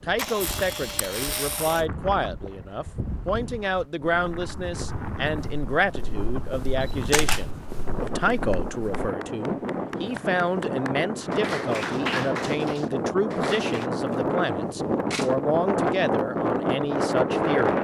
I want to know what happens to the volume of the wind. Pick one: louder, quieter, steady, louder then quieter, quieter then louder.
louder.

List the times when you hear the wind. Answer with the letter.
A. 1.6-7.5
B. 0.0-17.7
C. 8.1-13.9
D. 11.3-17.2
B.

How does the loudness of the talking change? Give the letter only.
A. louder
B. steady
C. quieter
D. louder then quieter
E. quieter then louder
B.